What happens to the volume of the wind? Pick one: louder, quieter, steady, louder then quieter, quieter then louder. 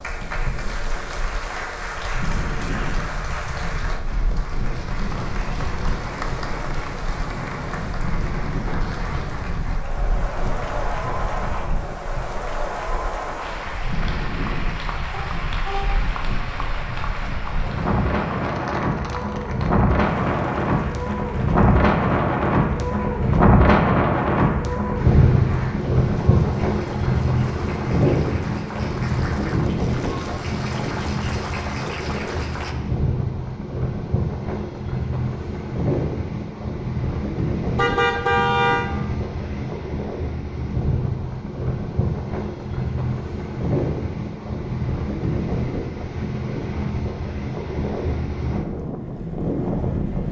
louder then quieter.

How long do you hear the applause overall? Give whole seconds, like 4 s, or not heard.
33 s.